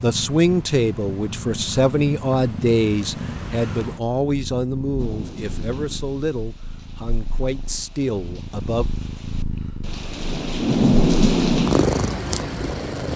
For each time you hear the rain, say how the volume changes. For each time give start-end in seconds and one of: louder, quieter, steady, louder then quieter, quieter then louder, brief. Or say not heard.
5.0-13.1 quieter then louder.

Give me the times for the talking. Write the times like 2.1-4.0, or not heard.
0.0-8.9.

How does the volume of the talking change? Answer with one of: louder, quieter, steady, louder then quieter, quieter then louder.
quieter.